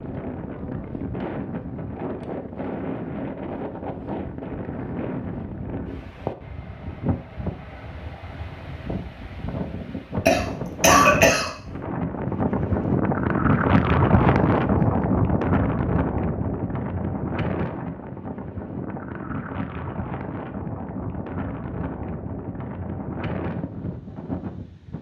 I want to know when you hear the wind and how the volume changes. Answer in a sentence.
The wind can be heard from 0.0 to 24.9 s, getting louder then quieter.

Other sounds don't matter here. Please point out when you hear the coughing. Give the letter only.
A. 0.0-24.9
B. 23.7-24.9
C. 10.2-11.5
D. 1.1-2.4
C.